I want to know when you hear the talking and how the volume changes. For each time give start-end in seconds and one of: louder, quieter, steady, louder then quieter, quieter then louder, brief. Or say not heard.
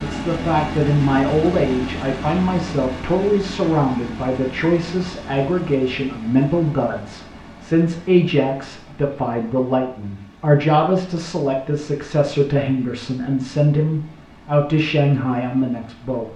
0.0-16.3 steady.